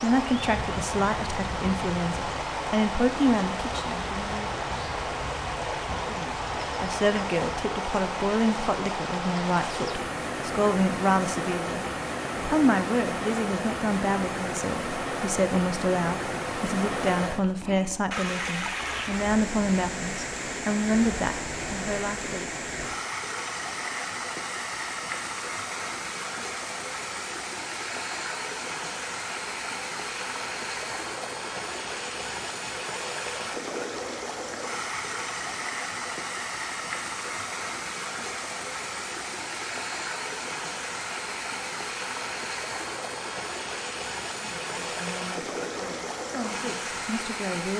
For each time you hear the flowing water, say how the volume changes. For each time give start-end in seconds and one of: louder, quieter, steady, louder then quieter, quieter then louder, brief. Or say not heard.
0.0-47.7 steady.